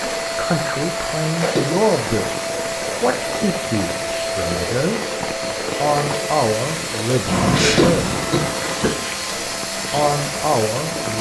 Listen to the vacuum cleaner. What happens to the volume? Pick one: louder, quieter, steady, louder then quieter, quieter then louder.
steady.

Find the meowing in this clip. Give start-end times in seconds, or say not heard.
7.2-8.2.